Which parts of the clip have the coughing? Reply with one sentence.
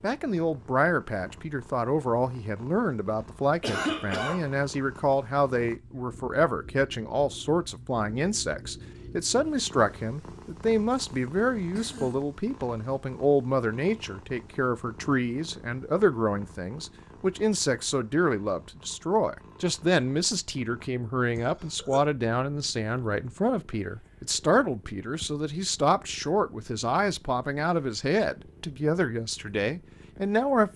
The coughing can be heard from 3.6 to 4.5 s, from 10.9 to 12.2 s and from 21.4 to 22.0 s.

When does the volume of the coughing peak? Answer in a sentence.
The loudest moment of the coughing is at 4 seconds.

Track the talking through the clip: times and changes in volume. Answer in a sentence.
The talking can be heard from 0.0 to 30.7 s, at a steady volume.